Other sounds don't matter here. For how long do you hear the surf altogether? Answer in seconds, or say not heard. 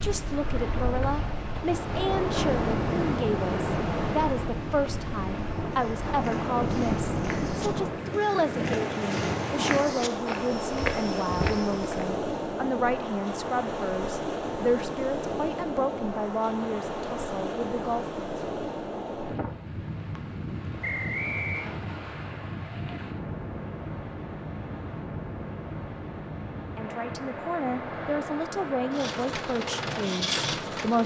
31 s.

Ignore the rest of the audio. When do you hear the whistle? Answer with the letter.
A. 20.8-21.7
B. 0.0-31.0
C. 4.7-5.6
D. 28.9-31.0
A.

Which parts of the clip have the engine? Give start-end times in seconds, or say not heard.
28.9-31.0.